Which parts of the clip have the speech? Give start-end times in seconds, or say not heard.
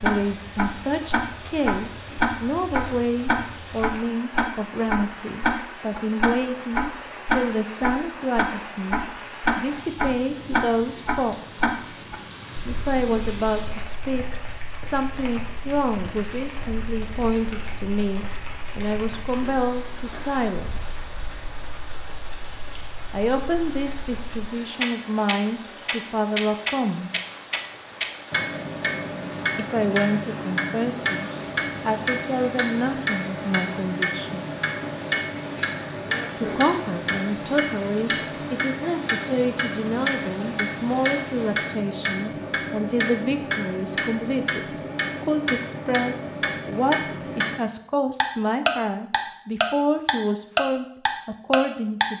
0.0-11.8, 12.7-21.1, 23.1-27.1, 29.6-34.5, 36.4-52.1.